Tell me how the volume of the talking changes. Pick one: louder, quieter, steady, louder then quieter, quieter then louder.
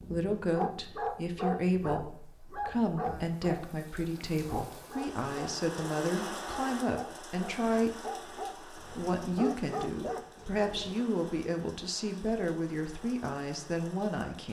steady.